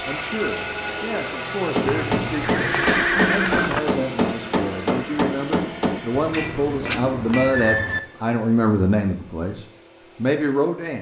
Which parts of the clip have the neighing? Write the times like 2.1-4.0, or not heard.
1.9-3.8, 6.1-8.0.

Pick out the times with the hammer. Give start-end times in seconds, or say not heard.
1.6-7.7.